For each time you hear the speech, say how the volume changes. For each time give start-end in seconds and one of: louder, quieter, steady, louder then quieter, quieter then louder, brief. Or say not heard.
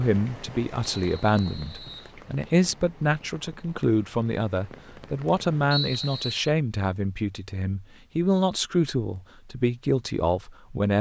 0.0-10.9 steady.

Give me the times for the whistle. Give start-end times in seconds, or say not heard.
1.0-2.1, 5.7-6.5.